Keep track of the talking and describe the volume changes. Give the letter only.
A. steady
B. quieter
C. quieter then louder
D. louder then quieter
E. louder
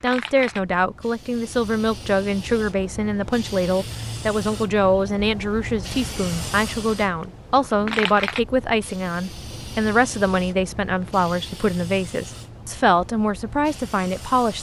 A.